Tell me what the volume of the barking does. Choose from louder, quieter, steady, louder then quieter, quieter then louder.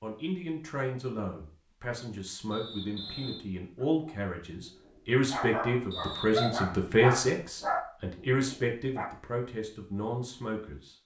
louder then quieter.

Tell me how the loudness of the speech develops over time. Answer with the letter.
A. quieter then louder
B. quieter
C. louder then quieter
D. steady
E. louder
C.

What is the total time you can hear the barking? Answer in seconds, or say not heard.
5 s.